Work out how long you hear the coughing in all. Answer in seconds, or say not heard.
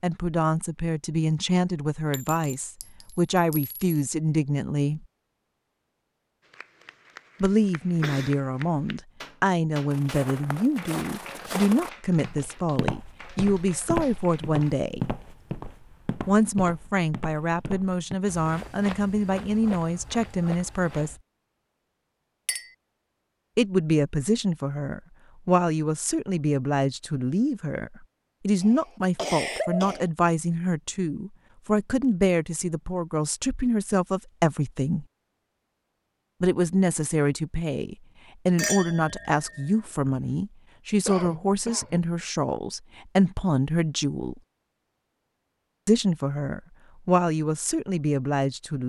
3 s.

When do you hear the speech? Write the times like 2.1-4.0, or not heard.
0.0-5.0, 7.4-15.1, 16.2-21.1, 23.6-35.0, 36.4-44.4, 45.9-48.8.